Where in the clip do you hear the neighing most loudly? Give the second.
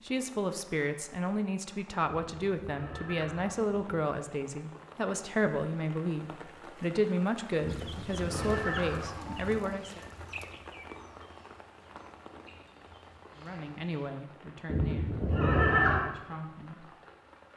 16 s.